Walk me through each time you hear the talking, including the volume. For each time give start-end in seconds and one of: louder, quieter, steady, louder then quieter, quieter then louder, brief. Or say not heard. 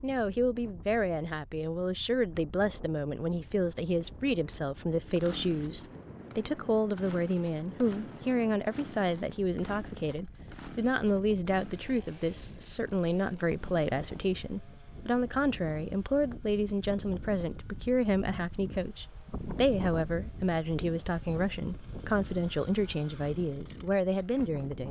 0.0-24.8 steady.